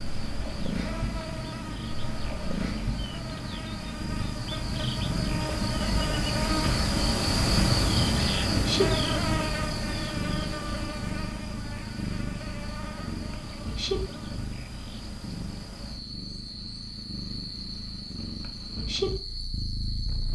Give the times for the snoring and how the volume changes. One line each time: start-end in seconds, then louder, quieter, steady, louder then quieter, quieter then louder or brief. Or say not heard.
not heard.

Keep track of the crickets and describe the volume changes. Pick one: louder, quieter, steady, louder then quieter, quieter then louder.
louder then quieter.